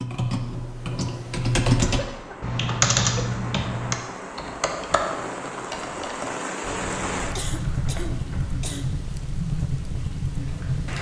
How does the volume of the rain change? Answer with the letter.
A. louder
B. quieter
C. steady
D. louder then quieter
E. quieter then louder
A.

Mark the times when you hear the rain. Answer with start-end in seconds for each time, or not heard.
1.9-10.9.